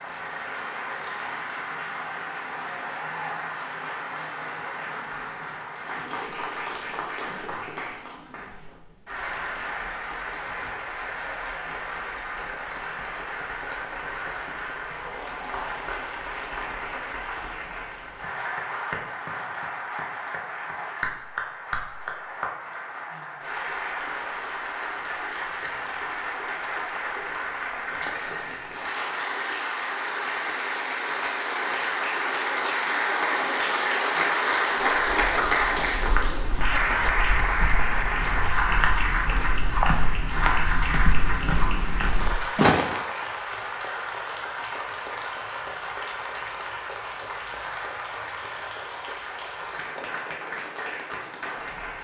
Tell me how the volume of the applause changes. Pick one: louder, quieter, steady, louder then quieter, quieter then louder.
louder then quieter.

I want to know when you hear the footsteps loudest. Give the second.
43 s.